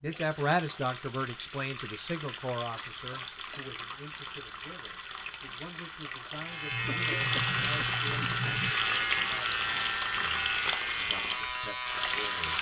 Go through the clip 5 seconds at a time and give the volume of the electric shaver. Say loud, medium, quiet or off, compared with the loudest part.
off, loud, loud.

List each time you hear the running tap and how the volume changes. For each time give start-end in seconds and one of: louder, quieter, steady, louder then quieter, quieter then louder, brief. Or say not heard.
0.0-12.5 louder.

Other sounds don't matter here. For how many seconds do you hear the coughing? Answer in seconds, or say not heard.
3 s.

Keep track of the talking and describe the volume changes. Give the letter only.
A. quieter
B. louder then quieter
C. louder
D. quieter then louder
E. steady
A.